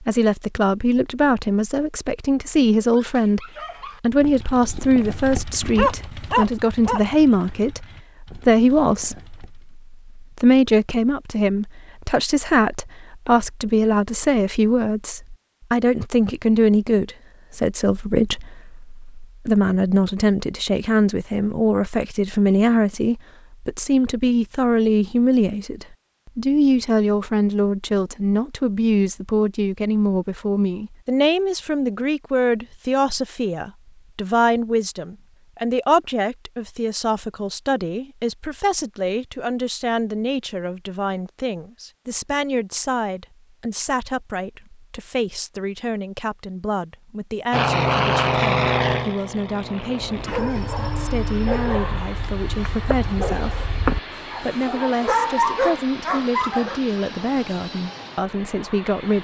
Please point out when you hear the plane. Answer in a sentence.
You can hear the plane from 47.5 to 59.2 s.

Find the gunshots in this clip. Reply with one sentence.
The gunshots can't be heard in this clip.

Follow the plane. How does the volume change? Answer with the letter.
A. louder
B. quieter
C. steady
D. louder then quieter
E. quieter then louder
B.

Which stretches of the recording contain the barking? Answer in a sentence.
The barking can be heard from 3.0 to 9.8 s and from 50.0 to 56.8 s.